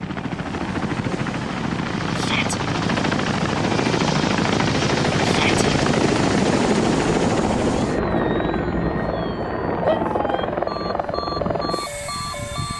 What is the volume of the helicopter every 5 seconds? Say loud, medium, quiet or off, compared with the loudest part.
loud, loud, medium.